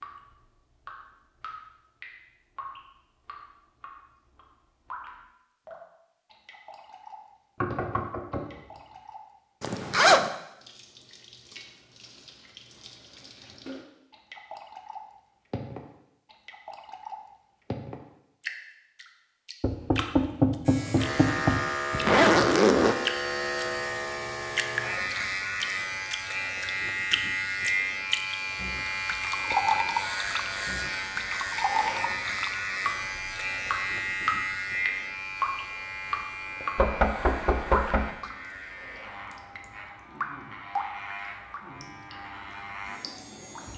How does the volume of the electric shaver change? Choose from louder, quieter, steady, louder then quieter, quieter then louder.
quieter.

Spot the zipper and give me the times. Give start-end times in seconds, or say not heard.
9.6-10.3, 21.9-22.9.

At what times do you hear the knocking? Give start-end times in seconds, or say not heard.
7.6-8.7, 19.6-21.6, 36.8-38.1.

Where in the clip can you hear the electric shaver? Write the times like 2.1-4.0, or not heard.
20.6-43.7.